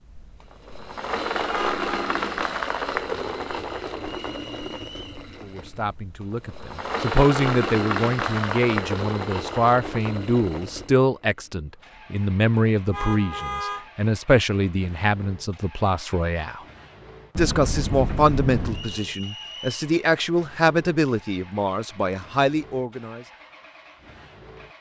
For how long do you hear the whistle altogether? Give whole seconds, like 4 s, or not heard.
2 s.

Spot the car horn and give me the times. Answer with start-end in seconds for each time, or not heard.
1.5-2.1, 12.9-13.8, 17.4-18.9.